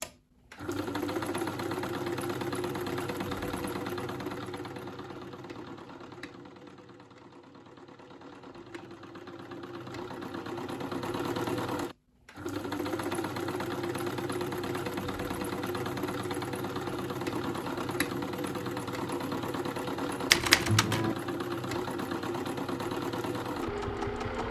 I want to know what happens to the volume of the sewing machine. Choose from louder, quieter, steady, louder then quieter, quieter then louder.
quieter then louder.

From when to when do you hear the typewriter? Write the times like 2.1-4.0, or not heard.
20.3-21.1.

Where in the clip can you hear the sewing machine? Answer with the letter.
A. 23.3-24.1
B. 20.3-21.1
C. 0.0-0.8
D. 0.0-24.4
D.